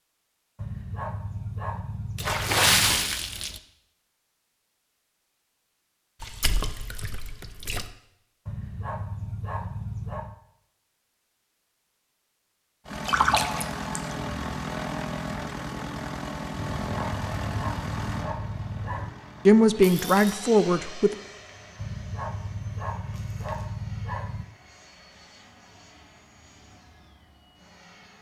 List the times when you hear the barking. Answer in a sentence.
The barking can be heard from 0.6 to 3.0 s, from 8.4 to 10.3 s, from 16.8 to 19.1 s and from 21.8 to 24.4 s.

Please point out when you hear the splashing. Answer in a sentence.
The splashing can be heard from 2.1 to 3.6 s, from 6.2 to 7.9 s, from 13.1 to 14.0 s, from 19.8 to 20.4 s and from 23.1 to 23.7 s.